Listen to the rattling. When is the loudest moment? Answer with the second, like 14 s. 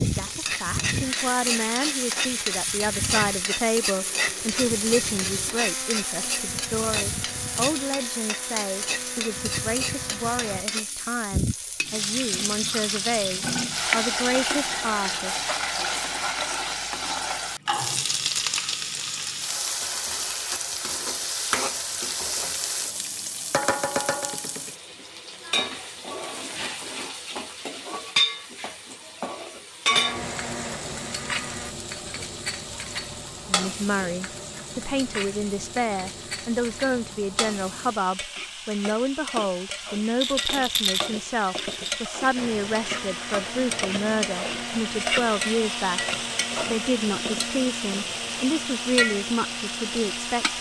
41 s.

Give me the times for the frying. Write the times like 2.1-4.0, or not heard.
0.0-50.5.